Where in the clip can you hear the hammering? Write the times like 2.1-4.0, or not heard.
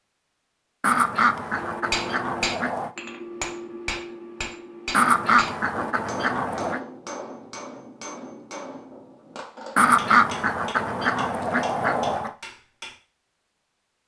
1.6-12.9.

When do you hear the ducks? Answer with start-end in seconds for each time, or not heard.
0.8-2.9, 4.9-6.8, 9.8-12.3.